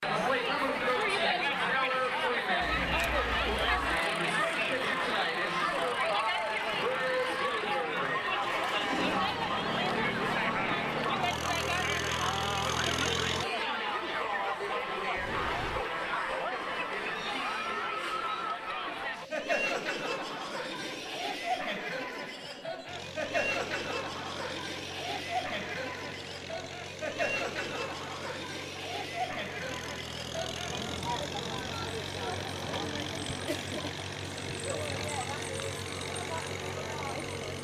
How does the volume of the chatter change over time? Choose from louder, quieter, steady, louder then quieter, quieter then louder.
quieter.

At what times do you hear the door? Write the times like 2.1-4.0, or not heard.
15.2-15.8.